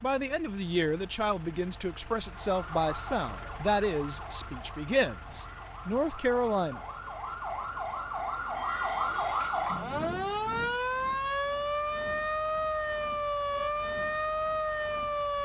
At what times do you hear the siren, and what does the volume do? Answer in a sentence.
You can hear the siren from 2.2 to 15.4 s, getting louder.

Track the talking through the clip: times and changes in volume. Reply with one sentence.
The talking can be heard from 0.0 to 6.8 s, at a steady volume.